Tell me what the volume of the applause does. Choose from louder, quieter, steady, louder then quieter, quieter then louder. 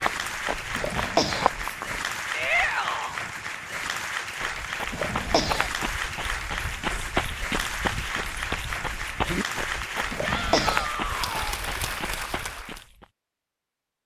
steady.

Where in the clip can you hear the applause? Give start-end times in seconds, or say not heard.
0.0-12.8.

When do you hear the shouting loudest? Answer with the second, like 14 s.
3 s.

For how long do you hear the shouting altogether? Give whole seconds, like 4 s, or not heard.
2 s.